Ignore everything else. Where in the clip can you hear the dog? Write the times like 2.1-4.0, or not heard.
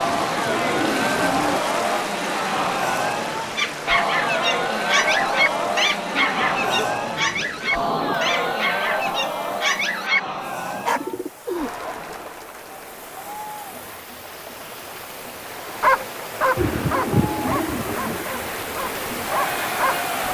3.5-11.0, 15.8-20.2.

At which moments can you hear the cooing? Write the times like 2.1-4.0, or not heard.
0.0-1.6, 6.2-8.2, 10.6-12.1, 16.6-18.2.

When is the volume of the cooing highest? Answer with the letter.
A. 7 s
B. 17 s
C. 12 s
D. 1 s
B.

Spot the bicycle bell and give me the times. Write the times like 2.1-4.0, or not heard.
not heard.